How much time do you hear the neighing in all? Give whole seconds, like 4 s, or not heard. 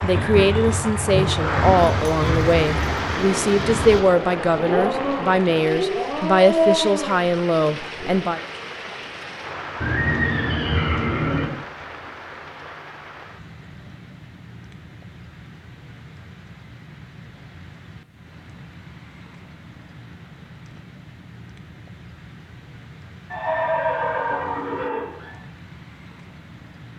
6 s.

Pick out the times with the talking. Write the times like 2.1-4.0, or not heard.
0.0-8.4.